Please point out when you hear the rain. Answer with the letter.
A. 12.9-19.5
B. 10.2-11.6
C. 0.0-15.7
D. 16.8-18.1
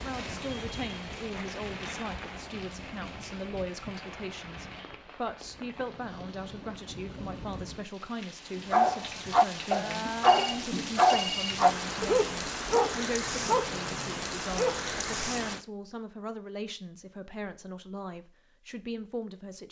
C.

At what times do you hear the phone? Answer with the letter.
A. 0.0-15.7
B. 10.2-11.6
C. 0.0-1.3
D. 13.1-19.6
B.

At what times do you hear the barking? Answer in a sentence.
The barking can be heard from 8.6 to 15.1 s.